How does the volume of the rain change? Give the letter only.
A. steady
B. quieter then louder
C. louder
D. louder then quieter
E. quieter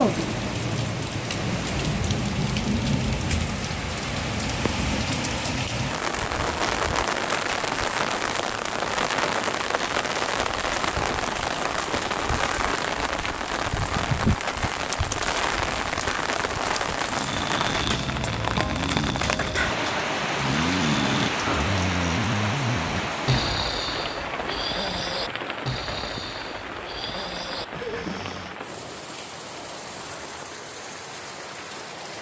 E.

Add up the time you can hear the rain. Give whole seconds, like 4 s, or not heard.
32 s.